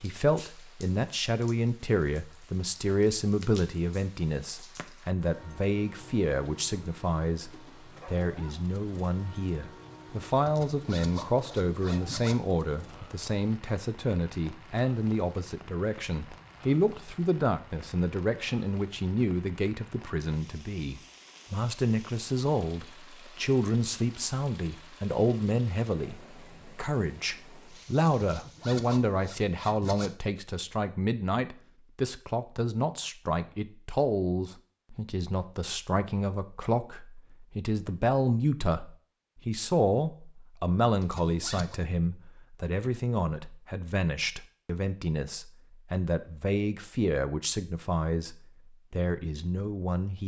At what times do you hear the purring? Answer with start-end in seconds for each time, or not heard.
not heard.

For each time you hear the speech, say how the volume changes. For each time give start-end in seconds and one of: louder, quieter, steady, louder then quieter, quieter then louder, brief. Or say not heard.
0.0-50.2 steady.